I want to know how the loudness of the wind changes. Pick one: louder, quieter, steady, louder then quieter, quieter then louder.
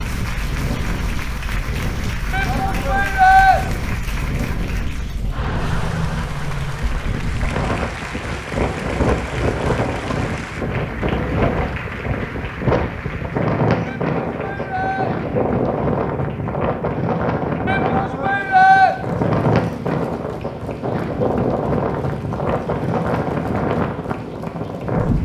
louder.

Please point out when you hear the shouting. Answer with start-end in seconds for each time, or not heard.
2.3-3.6, 13.8-15.2, 17.6-18.9.